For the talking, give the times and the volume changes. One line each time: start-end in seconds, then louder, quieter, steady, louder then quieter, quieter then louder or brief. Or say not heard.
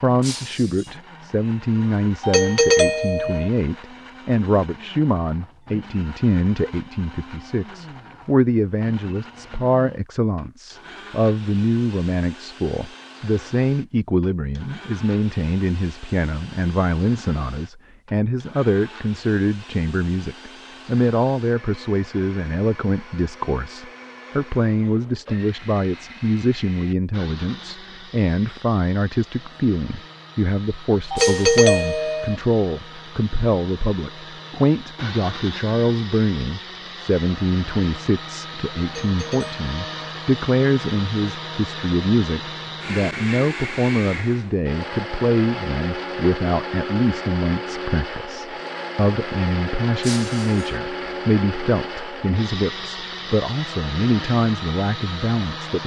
0.0-55.8 steady.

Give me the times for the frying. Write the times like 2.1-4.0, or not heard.
not heard.